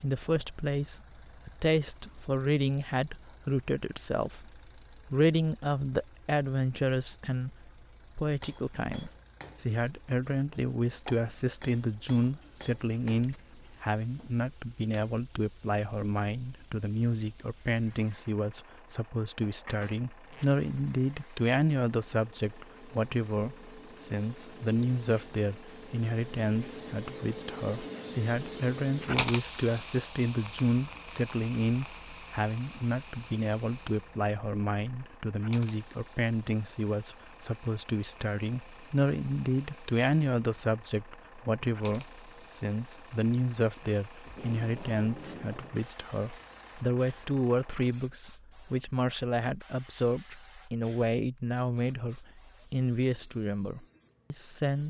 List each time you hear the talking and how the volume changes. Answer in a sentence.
The talking can be heard from 0.0 to 54.8 s, at a steady volume.